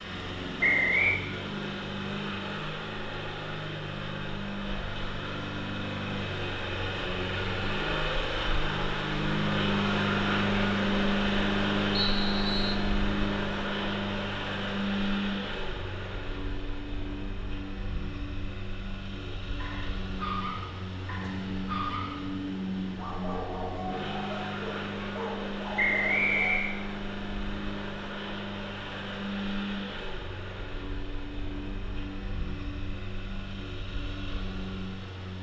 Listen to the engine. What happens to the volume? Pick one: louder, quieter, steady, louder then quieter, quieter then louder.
louder then quieter.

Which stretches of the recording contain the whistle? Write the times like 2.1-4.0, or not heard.
0.6-1.2, 11.9-12.8, 25.8-26.8.